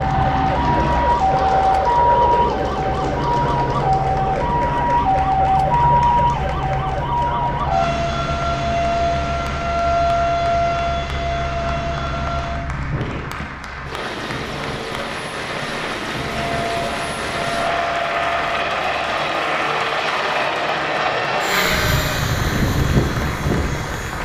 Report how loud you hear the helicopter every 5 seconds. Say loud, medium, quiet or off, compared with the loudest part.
loud, medium, medium, loud, loud.